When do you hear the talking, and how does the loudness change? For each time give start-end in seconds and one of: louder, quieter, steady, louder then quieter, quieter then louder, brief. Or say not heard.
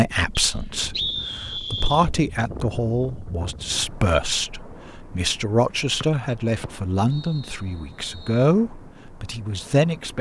0.0-10.1 steady.